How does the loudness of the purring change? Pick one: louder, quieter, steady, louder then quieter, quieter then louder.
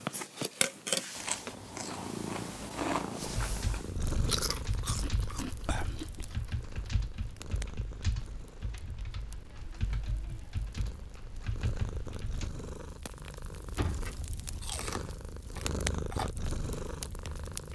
quieter then louder.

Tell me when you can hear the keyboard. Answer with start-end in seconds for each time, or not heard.
3.2-12.5.